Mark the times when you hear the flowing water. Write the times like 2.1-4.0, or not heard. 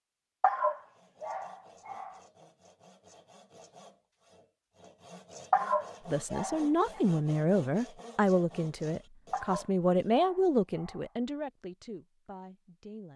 not heard.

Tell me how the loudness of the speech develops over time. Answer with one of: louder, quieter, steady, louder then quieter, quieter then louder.
quieter.